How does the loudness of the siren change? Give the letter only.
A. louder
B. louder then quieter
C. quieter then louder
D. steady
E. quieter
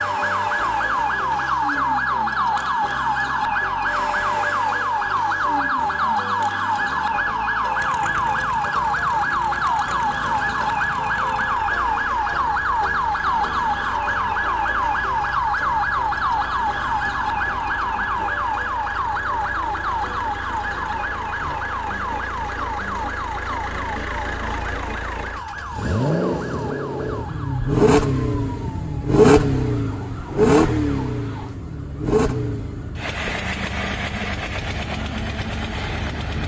E.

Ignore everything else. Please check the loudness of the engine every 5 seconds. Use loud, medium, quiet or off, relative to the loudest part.
quiet, quiet, quiet, quiet, quiet, loud, loud, medium.